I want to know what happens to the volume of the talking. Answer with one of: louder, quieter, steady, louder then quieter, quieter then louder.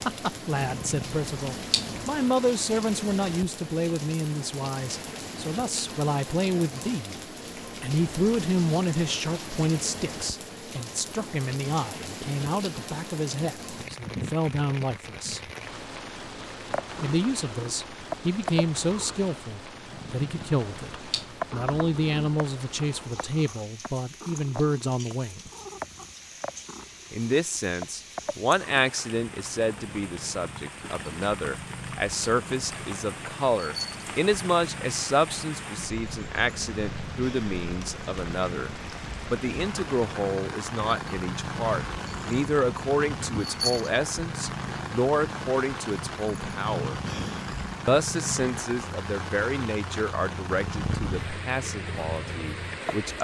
steady.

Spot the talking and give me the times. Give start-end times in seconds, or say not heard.
0.0-7.2, 7.8-15.4, 17.0-25.5, 27.1-47.0, 47.9-53.1.